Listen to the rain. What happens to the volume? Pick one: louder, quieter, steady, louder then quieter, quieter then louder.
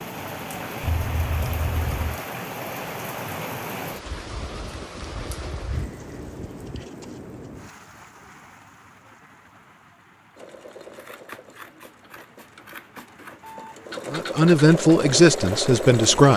quieter.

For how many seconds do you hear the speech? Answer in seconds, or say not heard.
2 s.